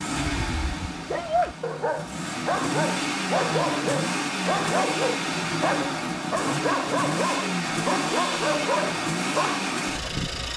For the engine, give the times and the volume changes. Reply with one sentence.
You can hear the engine from 0.0 to 10.5 s, getting louder.